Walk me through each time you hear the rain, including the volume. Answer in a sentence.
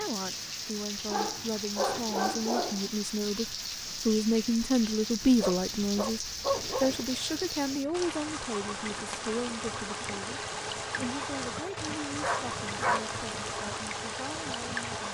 The rain can be heard from 0.0 to 15.0 s, at a steady volume.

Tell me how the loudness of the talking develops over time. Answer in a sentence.
The loudness of the talking goes up, then down.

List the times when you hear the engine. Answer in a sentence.
The engine can be heard from 6.5 to 15.0 s.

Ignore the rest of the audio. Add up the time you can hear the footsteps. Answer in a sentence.
The footsteps can't be heard in this clip.